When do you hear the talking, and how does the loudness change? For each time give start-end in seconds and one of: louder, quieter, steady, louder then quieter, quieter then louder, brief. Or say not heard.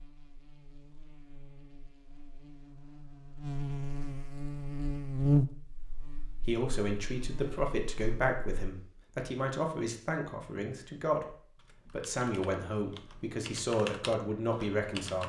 6.5-15.2 steady.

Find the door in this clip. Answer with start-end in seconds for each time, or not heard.
not heard.